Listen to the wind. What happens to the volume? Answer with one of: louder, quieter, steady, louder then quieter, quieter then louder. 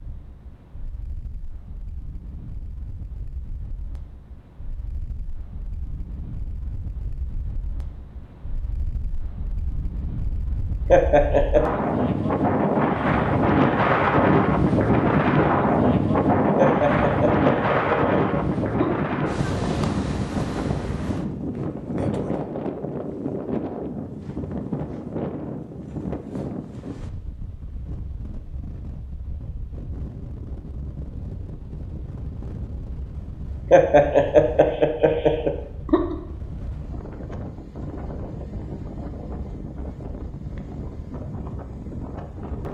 louder then quieter.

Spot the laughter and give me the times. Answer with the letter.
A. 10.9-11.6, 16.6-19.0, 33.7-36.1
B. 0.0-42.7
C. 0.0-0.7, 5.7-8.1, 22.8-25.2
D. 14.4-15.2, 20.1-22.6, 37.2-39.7
A.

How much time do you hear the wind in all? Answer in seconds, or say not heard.
43 s.